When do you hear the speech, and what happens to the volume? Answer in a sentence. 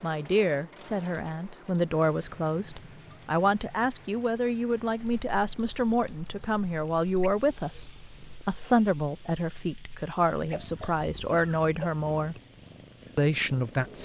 The speech can be heard from 0.0 to 12.3 s, at a steady volume; and briefly from 13.2 to 13.9 s.